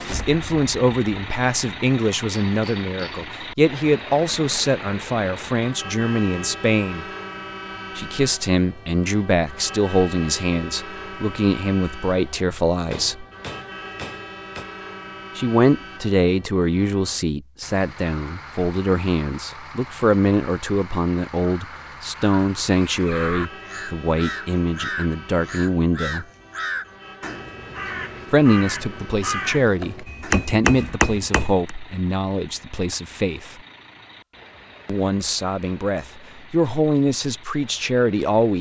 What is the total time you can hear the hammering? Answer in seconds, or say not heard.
5 s.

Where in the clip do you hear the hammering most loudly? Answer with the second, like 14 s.
31 s.